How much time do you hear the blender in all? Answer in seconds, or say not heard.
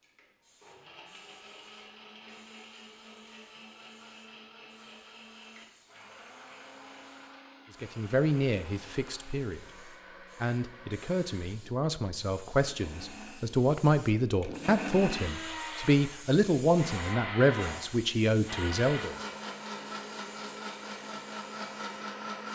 22 s.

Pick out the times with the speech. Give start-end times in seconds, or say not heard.
7.8-19.1.